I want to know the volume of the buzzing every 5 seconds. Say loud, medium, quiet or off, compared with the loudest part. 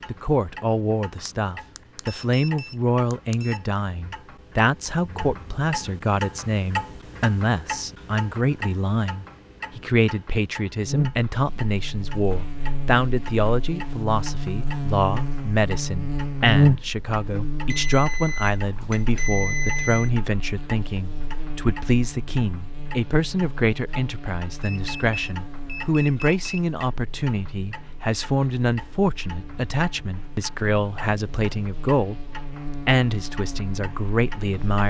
off, off, medium, loud, quiet, quiet, quiet.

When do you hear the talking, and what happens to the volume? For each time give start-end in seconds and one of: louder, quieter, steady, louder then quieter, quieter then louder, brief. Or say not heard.
0.1-34.8 steady.